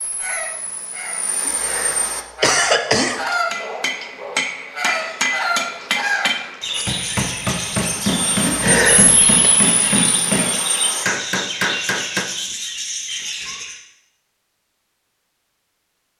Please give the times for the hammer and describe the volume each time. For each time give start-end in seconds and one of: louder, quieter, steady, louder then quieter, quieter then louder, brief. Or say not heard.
3.2-12.2 steady.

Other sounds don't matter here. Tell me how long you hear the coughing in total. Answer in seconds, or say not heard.
3 s.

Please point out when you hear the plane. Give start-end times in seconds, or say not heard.
0.0-2.2, 6.9-11.1.